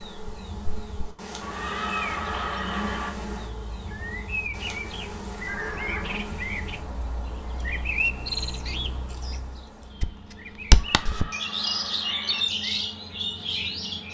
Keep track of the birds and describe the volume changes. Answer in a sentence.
The loudness of the birds goes up.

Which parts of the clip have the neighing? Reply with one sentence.
You can hear the neighing from 1.4 to 3.1 s, from 5.5 to 6.3 s and from 10.7 to 12.4 s.